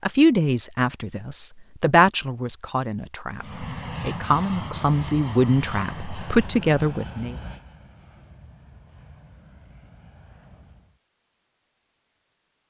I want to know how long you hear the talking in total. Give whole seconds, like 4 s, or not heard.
7 s.